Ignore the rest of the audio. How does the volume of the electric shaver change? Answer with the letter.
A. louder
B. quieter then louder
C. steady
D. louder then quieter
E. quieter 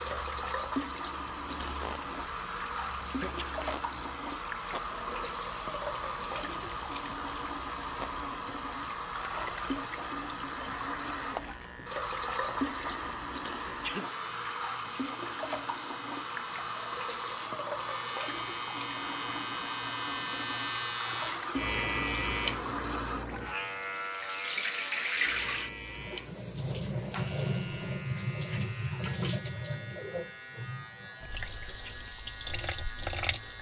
D.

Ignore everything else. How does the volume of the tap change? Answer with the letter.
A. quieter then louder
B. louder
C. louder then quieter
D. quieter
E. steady
E.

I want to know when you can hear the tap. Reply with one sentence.
The tap can be heard from 0.0 to 33.5 s.